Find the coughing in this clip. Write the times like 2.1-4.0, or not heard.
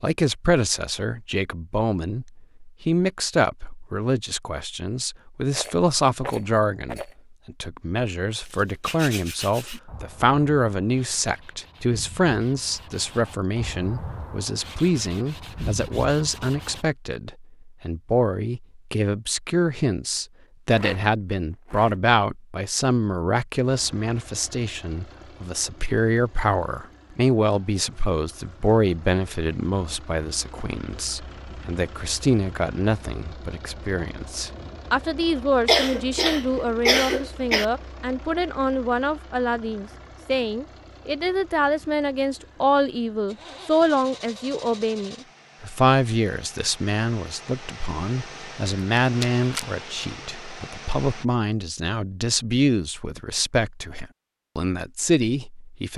35.6-37.6.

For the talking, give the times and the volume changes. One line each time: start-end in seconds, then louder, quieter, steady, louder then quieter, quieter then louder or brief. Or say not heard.
0.0-55.9 steady.